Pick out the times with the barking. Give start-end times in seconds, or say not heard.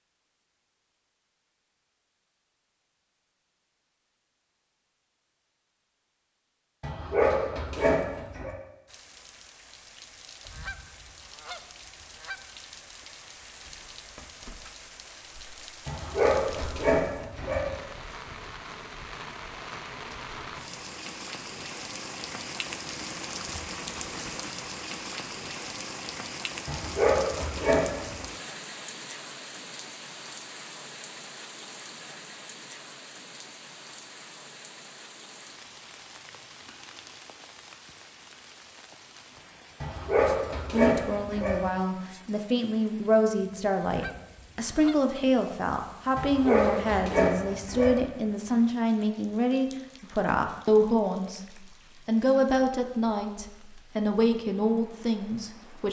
6.8-8.6, 15.8-17.8, 26.6-28.2, 39.8-41.6, 46.1-48.0.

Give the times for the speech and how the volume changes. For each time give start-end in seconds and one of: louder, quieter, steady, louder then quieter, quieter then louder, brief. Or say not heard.
40.7-55.8 steady.